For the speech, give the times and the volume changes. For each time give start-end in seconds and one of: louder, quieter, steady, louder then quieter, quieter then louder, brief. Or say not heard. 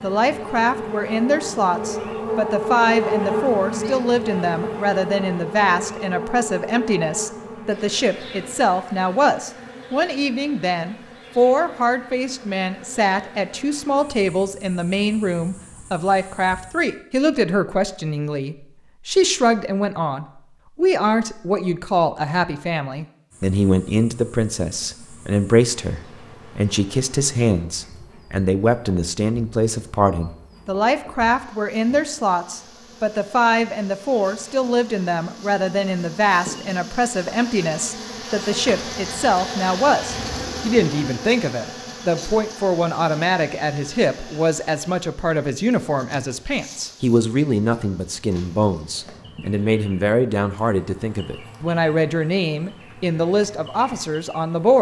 0.0-54.7 steady.